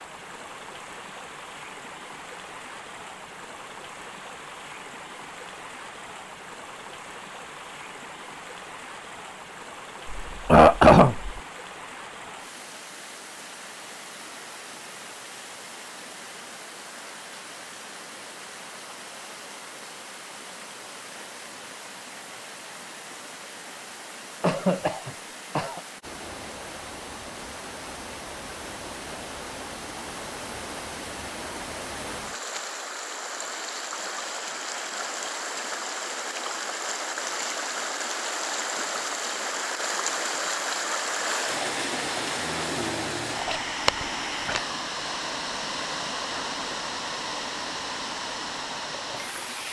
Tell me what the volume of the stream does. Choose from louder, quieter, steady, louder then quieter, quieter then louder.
louder.